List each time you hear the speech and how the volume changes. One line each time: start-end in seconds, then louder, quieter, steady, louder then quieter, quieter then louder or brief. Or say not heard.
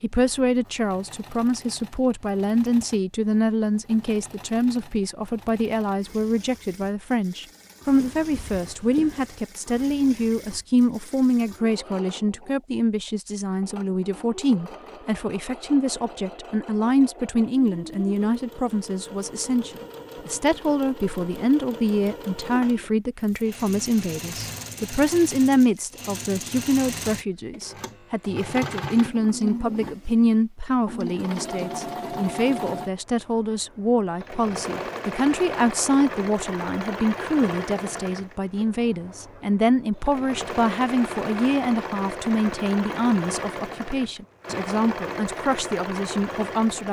0.0-46.8 steady.